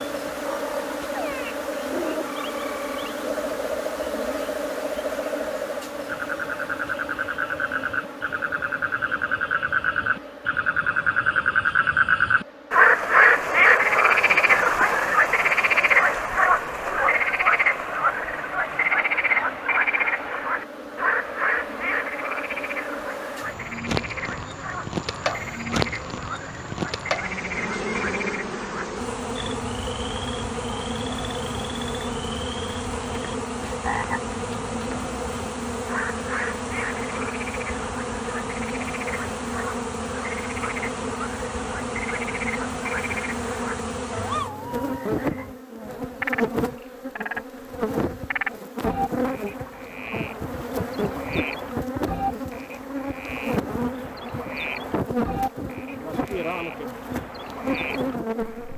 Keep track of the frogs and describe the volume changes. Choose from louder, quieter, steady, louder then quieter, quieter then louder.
louder then quieter.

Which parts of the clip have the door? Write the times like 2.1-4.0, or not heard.
not heard.